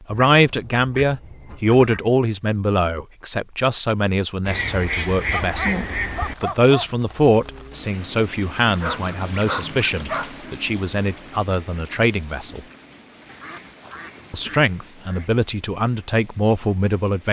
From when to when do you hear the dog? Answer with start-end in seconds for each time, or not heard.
5.3-6.8, 8.8-10.3.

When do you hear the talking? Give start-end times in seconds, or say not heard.
0.1-12.6, 14.3-17.2.